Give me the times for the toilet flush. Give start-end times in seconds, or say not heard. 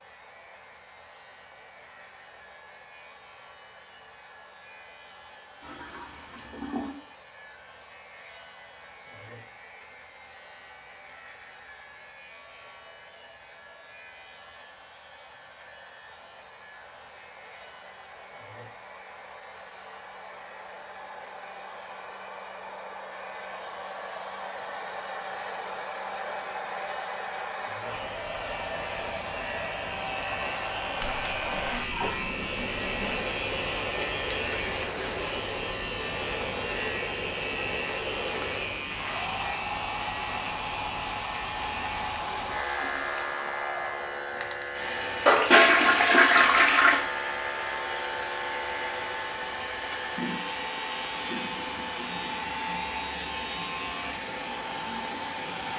5.6-7.0, 31.0-33.2, 45.2-47.1.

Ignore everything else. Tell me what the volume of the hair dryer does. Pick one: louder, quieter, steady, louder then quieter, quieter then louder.
louder.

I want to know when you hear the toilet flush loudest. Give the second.
46 s.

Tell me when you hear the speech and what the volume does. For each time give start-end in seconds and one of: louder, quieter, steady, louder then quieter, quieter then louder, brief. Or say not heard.
not heard.